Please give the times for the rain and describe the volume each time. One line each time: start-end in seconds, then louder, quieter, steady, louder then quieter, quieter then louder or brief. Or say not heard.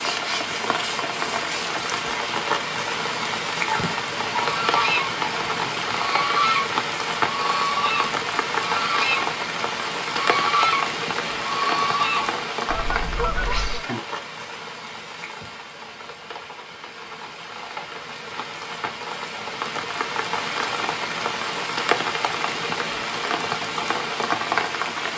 0.0-25.1 quieter then louder.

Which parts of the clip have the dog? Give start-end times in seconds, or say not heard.
3.6-6.0.